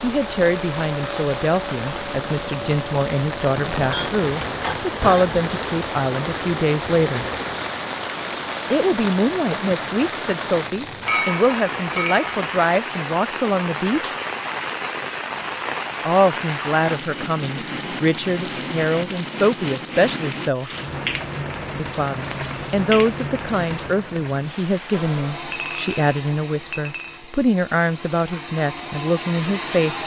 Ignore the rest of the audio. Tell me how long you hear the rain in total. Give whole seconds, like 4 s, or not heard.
25 s.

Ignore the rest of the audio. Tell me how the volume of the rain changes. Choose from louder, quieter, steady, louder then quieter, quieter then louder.
steady.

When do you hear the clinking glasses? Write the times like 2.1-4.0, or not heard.
3.6-5.4, 11.1-12.2, 25.5-27.2.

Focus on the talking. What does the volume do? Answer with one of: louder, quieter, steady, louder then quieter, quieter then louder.
steady.